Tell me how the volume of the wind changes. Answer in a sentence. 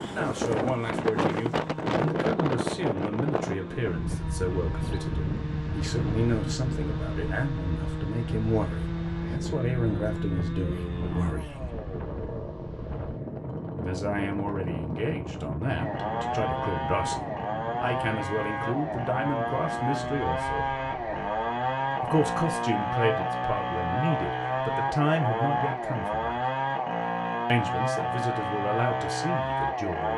The volume of the wind goes down.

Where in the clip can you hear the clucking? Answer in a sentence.
The clucking can't be heard in this clip.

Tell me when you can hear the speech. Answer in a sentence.
The speech can be heard from 0.1 to 11.8 s, from 13.8 to 20.7 s, from 22.0 to 26.4 s and from 27.4 to 30.1 s.